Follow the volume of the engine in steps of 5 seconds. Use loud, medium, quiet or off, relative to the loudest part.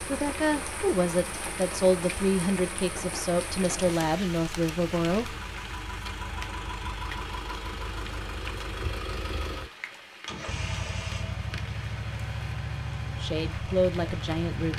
medium, loud, loud.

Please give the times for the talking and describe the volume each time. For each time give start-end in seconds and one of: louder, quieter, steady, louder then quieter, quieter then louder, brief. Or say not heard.
0.0-5.3 steady
13.2-14.7 brief.